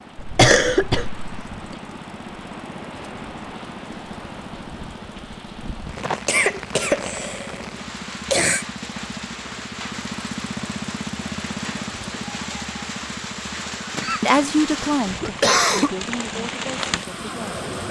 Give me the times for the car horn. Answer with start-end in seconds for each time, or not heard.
not heard.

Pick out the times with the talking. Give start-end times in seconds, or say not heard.
14.2-17.7.